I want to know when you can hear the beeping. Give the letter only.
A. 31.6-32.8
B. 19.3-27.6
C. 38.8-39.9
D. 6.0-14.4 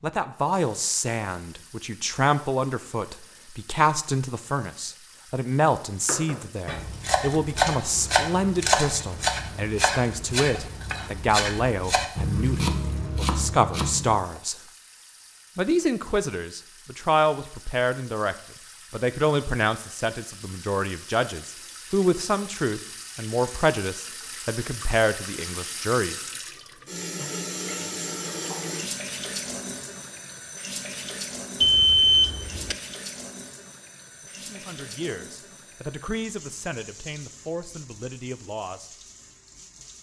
A.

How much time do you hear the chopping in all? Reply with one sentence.
The chopping can be heard for 8 seconds in total.